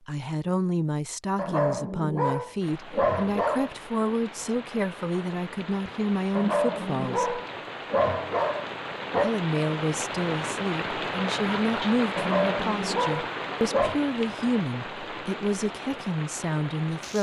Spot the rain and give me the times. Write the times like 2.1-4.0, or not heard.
2.6-17.1.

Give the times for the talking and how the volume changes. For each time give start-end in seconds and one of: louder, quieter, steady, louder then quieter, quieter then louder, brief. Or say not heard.
0.1-7.4 steady
9.2-17.1 steady.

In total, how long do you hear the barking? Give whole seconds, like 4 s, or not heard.
7 s.